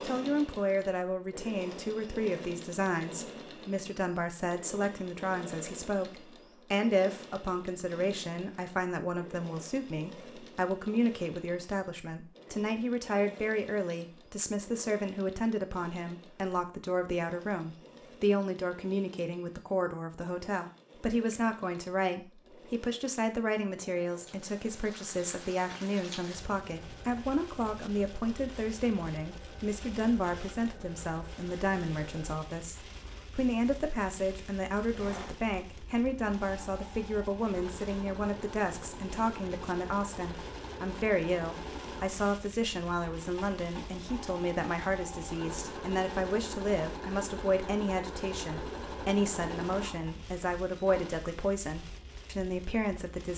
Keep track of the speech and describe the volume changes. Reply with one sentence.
The loudness of the speech stays about the same.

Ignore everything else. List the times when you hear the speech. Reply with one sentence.
You can hear the speech from 0.0 to 53.3 s.